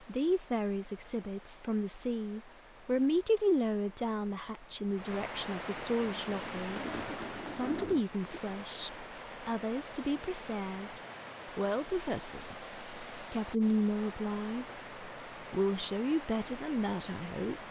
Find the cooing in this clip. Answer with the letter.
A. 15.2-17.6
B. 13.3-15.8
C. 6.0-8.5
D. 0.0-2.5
C.